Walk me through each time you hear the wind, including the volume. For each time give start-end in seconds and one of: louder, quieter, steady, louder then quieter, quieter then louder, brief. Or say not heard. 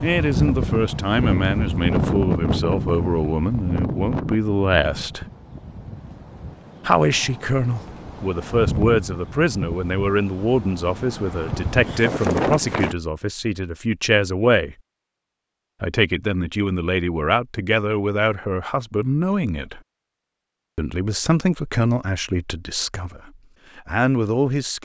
0.0-12.9 quieter then louder.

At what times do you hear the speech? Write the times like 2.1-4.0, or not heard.
0.0-5.2, 6.8-14.8, 15.8-19.8, 20.8-24.7.